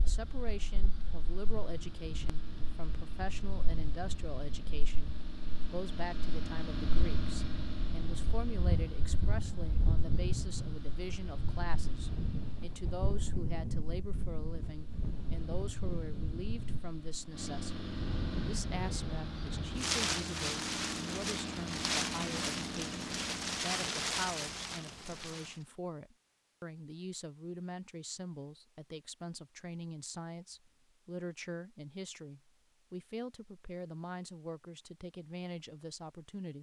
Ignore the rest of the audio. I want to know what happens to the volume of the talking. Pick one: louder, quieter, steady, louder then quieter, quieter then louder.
steady.